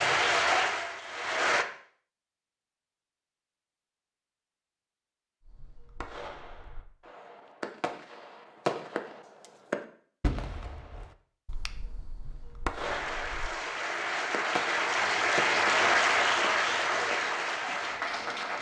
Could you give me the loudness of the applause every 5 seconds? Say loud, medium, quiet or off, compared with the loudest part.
loud, off, medium, loud.